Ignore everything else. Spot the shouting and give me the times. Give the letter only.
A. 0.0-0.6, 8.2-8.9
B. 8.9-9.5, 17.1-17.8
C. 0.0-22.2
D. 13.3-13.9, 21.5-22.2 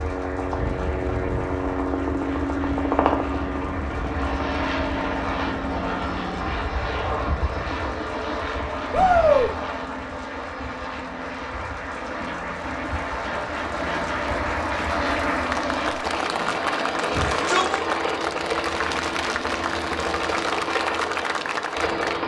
B.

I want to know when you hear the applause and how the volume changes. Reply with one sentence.
You can hear the applause from 0.0 to 22.2 s, getting louder.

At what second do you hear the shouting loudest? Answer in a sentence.
The loudest moment of the shouting is at 9 seconds.